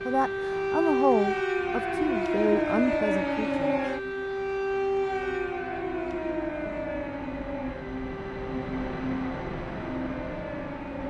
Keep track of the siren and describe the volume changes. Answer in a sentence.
The volume of the siren goes down.